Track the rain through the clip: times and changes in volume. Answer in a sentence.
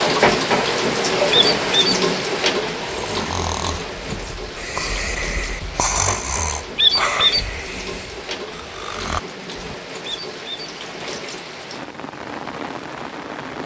The rain can be heard from 0.0 to 13.6 s, getting quieter.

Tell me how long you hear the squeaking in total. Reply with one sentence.
The squeaking can be heard for 2 seconds in total.